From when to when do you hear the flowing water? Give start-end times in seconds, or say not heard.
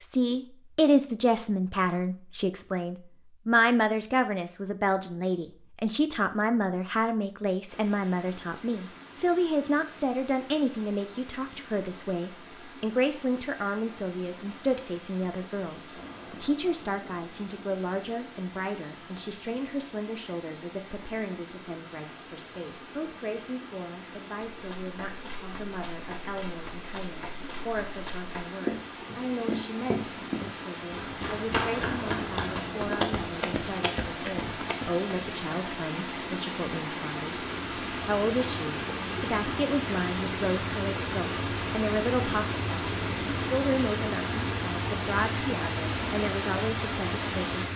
7.7-47.7.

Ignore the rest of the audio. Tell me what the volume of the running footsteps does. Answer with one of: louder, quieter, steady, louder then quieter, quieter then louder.
louder.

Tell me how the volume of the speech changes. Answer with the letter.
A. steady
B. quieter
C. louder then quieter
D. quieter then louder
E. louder
D.